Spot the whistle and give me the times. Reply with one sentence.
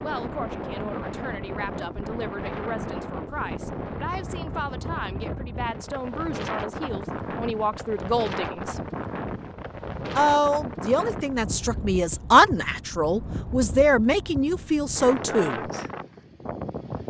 The whistle can't be heard in this clip.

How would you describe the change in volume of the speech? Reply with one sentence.
The loudness of the speech goes up.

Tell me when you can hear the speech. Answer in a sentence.
The speech can be heard from 0.0 to 8.8 s and from 10.2 to 15.7 s.